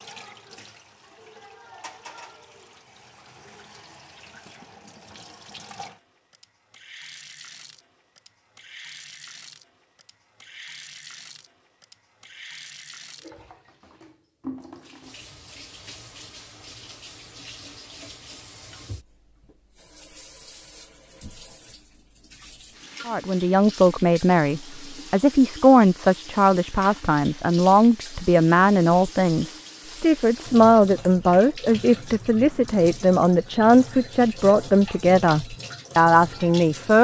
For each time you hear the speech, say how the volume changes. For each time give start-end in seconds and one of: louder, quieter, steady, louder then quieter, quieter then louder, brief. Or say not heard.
23.1-36.9 steady.